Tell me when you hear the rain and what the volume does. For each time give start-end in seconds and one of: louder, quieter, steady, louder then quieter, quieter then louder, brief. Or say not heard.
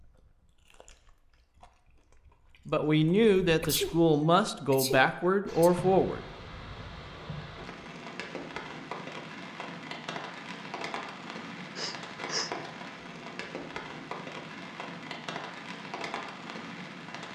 5.5-17.3 steady.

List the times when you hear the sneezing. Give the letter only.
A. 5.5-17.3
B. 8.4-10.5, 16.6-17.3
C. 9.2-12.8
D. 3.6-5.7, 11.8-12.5
D.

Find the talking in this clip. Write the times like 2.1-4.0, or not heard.
2.6-6.2.